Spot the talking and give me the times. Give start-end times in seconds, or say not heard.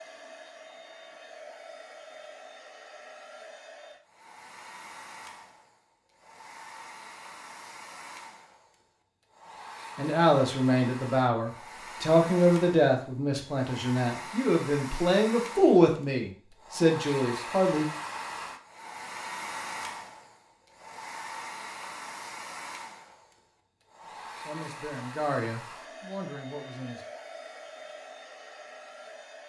9.9-17.9, 24.4-27.1.